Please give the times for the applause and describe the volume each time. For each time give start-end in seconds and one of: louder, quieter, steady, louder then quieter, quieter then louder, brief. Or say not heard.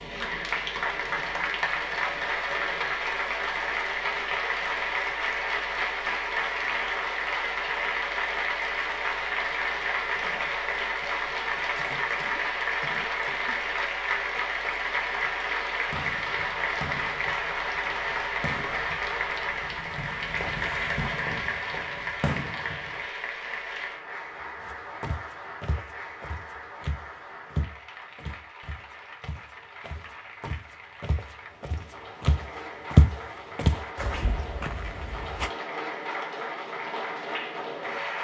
0.0-38.1 quieter.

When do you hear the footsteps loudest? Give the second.
33 s.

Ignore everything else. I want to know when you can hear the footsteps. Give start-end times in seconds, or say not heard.
24.6-35.5.